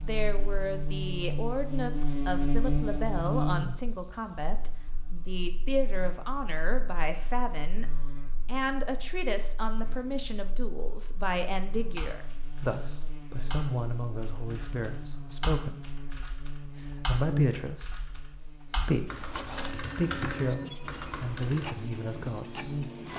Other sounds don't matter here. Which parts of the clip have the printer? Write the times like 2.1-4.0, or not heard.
19.2-23.1.